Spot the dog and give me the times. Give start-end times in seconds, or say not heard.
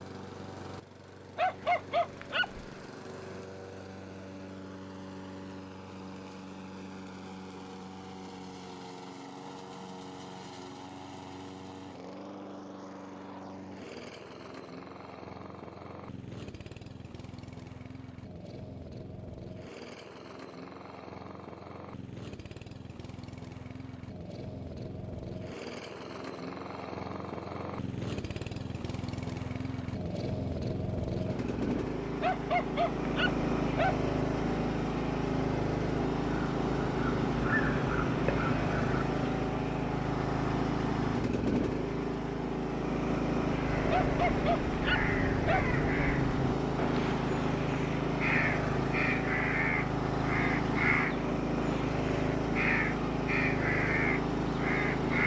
1.4-2.8, 32.2-34.0, 43.9-45.6.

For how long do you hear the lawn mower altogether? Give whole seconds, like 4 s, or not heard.
55 s.